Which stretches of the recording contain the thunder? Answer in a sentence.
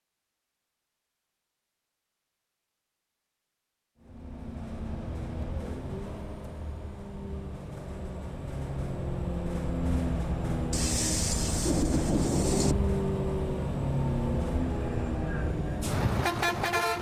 You can hear the thunder from 10.7 to 12.8 s.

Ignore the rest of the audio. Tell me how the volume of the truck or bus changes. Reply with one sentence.
The loudness of the truck or bus goes up.